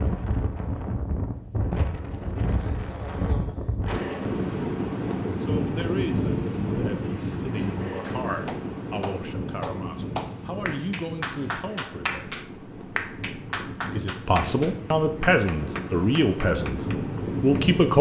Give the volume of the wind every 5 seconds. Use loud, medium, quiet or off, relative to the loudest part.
loud, loud, medium, loud.